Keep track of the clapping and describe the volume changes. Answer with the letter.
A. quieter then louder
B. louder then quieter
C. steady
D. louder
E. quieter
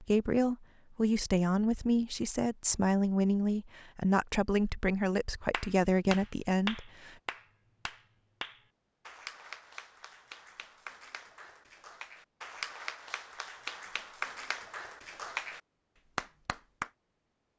A.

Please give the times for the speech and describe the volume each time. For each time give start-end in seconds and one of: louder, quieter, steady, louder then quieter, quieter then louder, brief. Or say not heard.
0.0-7.2 steady.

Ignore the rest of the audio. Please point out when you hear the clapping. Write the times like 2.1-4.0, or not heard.
5.5-16.9.